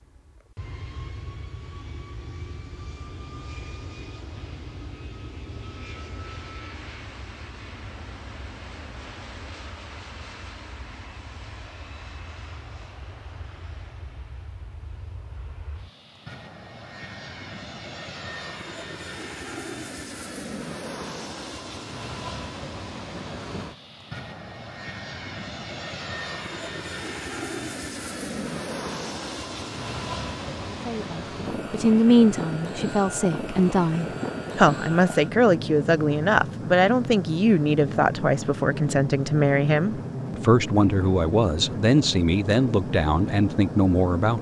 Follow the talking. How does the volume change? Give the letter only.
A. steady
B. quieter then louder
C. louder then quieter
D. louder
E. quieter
A.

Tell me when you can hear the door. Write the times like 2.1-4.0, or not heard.
not heard.